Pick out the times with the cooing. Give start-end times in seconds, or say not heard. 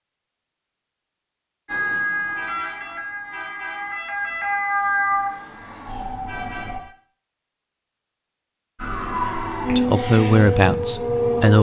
not heard.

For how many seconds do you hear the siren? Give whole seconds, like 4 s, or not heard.
8 s.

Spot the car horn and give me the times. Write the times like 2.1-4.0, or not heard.
2.4-4.0, 6.2-7.0.